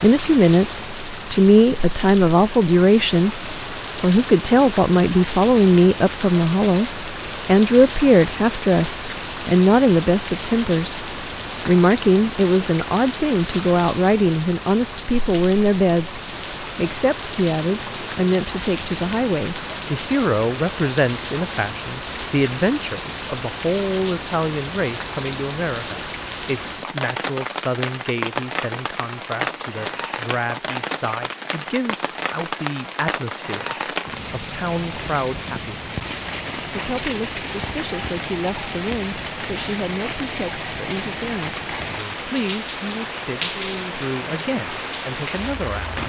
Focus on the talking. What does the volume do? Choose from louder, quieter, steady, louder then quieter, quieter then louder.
quieter.